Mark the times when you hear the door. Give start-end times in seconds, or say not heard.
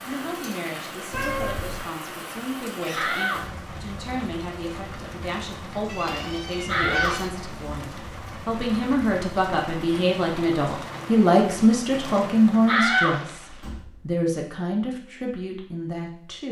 2.9-3.6, 6.7-7.8, 12.7-13.9.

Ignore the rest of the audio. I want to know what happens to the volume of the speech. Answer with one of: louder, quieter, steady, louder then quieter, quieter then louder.
louder then quieter.